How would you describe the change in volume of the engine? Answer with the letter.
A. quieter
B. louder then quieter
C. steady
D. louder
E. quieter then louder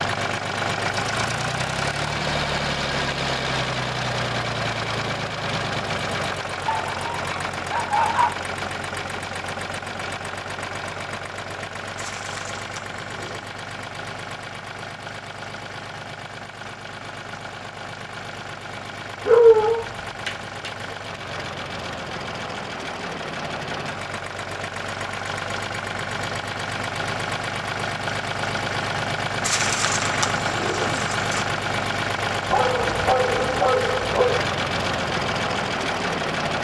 E.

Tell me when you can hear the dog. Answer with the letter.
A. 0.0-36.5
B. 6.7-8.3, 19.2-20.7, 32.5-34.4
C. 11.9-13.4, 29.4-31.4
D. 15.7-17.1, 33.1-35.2
B.